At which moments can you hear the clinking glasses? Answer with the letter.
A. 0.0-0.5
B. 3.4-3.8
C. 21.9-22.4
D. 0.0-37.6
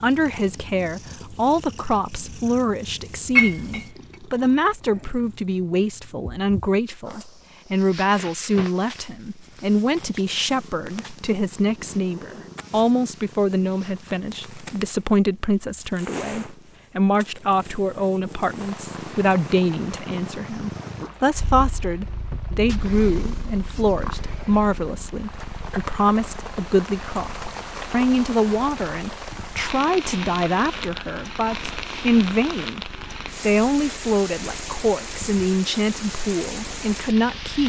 B.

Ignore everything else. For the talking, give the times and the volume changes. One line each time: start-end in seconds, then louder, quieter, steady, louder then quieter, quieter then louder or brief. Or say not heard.
0.0-37.6 steady.